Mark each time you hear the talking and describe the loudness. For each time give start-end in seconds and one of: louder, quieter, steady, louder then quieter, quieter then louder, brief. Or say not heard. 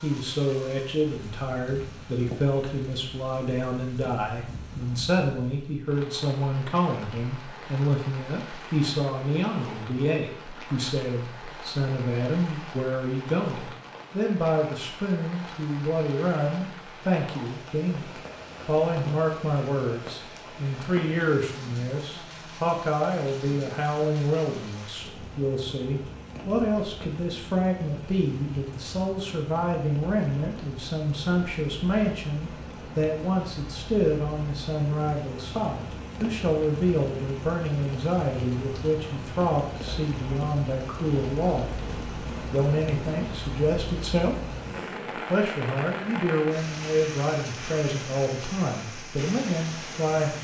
0.0-50.3 steady.